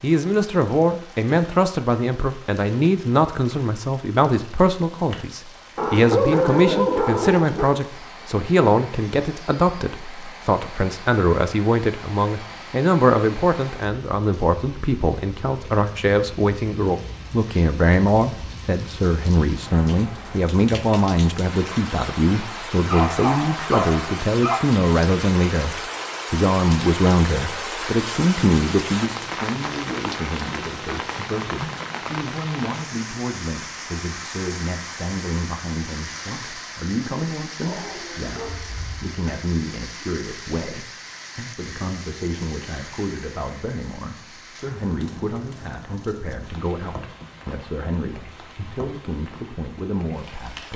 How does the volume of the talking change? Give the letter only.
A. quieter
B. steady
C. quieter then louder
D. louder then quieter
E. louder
A.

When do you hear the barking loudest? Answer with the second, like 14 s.
6 s.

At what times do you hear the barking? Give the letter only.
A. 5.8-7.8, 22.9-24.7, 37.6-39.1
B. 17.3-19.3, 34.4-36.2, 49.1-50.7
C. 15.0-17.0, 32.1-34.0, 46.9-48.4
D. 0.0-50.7
A.